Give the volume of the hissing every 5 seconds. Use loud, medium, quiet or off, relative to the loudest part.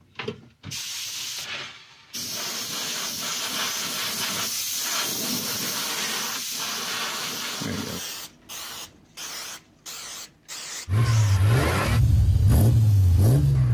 loud, loud, medium.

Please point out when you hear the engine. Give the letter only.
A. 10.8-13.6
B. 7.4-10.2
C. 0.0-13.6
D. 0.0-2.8
A.